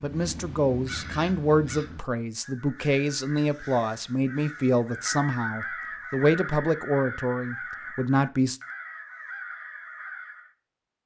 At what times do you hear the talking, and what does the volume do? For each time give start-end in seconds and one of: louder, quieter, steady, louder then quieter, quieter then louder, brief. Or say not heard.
0.0-8.6 steady.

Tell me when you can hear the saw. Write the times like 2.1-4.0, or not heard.
not heard.